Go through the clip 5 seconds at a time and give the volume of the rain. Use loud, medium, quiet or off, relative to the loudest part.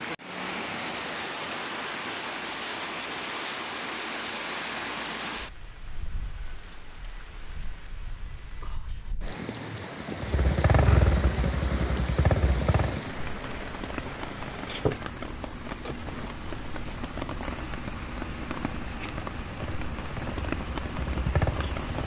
loud, medium, loud, loud, loud.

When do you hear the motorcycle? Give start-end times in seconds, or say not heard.
10.2-13.0, 19.4-21.9.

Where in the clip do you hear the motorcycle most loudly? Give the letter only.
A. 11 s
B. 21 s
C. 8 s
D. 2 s
A.